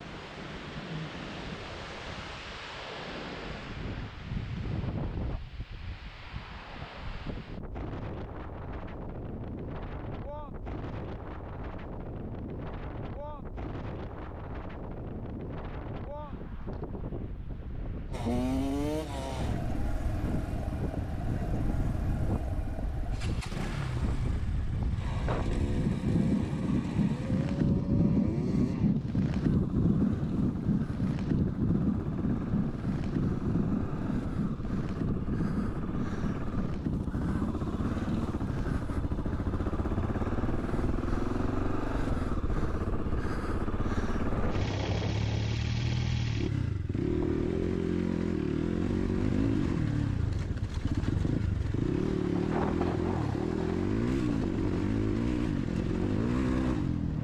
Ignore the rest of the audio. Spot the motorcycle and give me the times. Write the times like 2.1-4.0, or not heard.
18.1-57.1.